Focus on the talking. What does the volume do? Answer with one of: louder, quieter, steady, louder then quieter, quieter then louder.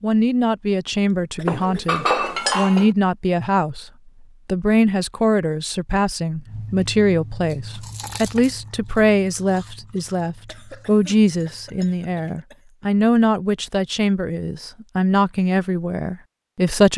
steady.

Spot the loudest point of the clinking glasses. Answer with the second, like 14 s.
2 s.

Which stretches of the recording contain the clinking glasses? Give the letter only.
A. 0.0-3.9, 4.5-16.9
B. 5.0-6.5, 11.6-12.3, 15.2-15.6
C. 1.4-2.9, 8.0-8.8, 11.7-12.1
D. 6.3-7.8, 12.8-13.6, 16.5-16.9
C.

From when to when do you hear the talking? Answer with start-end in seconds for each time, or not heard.
0.0-3.9, 4.5-16.9.